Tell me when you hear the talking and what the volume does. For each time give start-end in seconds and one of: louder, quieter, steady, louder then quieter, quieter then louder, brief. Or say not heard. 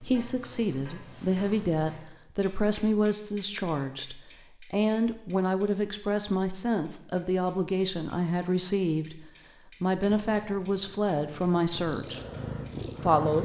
0.0-9.2 steady
9.8-12.2 brief
13.0-13.4 brief.